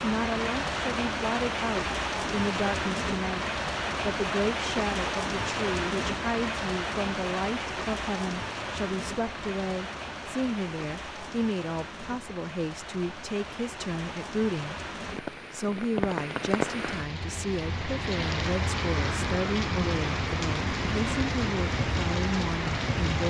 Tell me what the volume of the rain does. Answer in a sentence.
The volume of the rain goes down, then up.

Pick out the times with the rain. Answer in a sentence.
The rain can be heard from 0.0 to 23.2 s.